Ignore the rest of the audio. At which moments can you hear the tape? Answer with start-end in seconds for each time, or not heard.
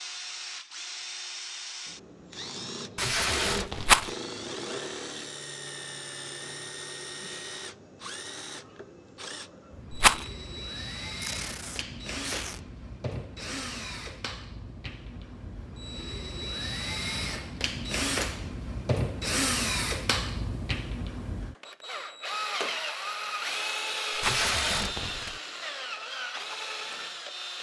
3.0-4.2, 11.2-12.6, 24.2-25.4.